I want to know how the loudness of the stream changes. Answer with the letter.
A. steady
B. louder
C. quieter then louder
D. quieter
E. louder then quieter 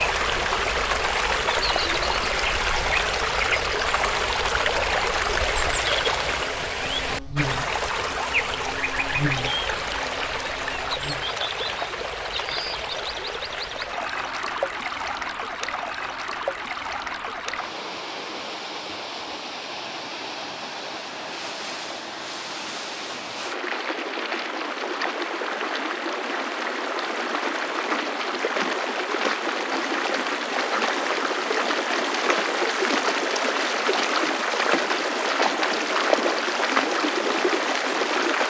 C.